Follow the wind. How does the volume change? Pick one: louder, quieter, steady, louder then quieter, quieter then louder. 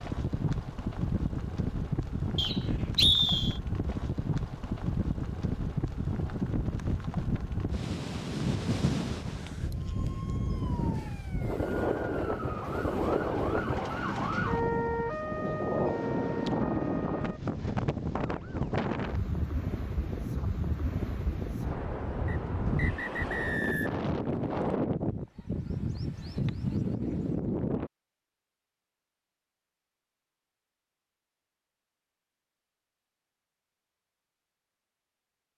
steady.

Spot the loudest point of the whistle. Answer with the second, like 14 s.
3 s.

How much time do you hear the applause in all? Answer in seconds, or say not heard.
not heard.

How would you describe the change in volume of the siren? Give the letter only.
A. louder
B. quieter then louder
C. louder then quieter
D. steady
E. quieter
C.